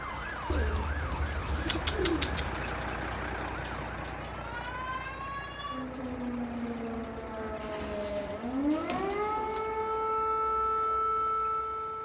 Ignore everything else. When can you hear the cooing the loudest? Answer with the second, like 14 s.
2 s.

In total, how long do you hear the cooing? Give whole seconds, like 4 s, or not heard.
4 s.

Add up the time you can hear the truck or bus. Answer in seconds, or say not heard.
12 s.